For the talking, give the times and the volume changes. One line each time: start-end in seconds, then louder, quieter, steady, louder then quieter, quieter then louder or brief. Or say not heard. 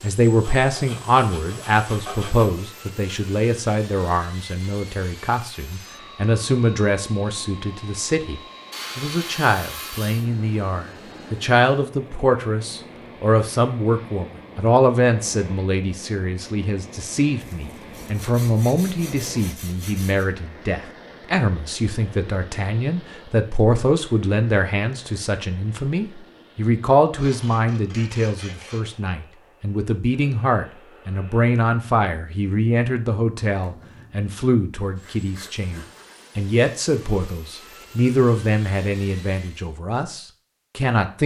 0.0-41.2 steady.